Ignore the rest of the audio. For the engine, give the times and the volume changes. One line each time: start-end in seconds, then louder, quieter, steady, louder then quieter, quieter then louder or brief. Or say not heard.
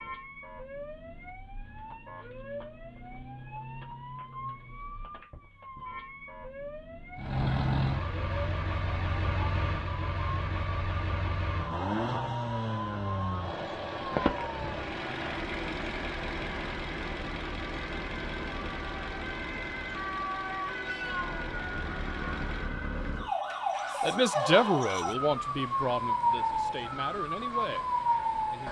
7.2-28.6 quieter.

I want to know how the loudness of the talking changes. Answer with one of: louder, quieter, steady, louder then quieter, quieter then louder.
quieter.